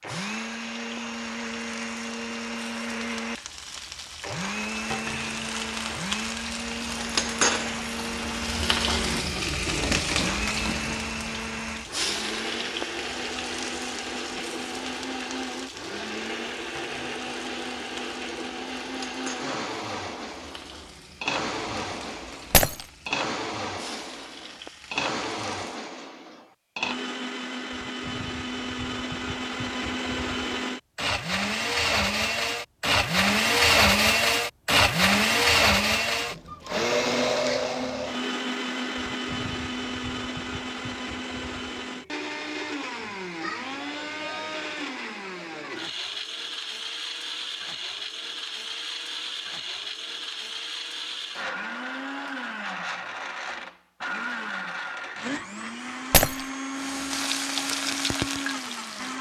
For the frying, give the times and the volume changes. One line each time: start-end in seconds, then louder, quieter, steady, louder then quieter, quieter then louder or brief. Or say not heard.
0.0-25.7 louder then quieter
56.8-59.1 brief.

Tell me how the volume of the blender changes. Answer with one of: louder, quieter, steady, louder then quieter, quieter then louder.
louder then quieter.